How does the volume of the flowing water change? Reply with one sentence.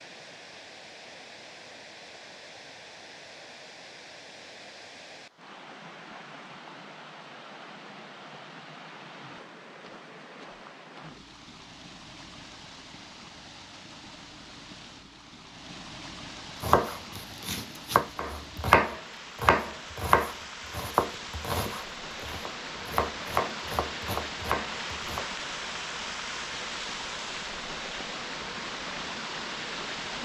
The loudness of the flowing water goes up.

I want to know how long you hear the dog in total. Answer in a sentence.
The dog can't be heard in this clip.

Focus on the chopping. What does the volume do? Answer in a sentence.
The loudness of the chopping goes up, then down.